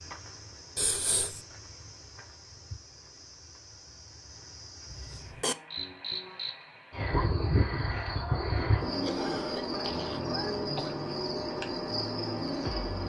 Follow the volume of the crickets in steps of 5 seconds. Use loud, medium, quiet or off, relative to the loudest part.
quiet, loud, loud.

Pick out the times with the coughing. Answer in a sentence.
You can hear the coughing from 0.8 to 1.4 s, from 4.9 to 5.5 s and from 9.0 to 10.9 s.